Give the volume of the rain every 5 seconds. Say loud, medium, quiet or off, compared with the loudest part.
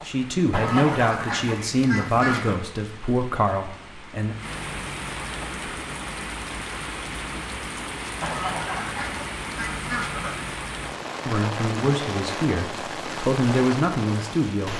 medium, loud, loud.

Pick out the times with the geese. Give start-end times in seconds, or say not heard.
0.5-2.6, 8.2-10.6.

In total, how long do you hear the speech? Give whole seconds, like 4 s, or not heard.
8 s.